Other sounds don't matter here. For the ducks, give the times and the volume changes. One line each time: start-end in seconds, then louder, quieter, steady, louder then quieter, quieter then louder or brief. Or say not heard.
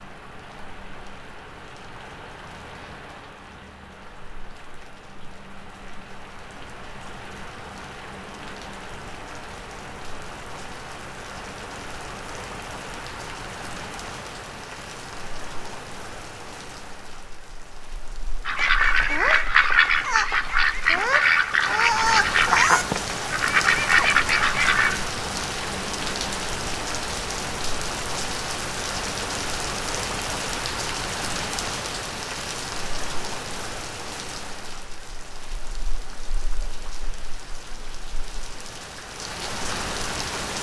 18.4-25.0 steady.